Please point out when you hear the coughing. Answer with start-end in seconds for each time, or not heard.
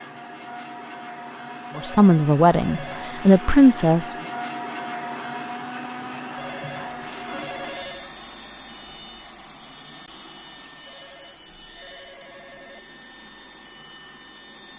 not heard.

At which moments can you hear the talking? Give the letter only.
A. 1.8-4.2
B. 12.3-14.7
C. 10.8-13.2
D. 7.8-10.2
A.